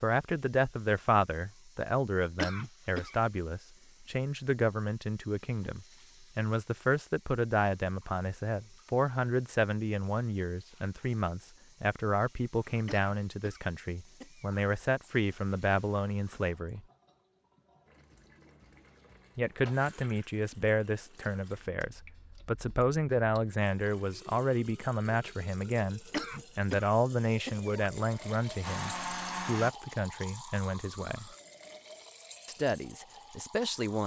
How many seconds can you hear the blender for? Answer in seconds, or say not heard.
2 s.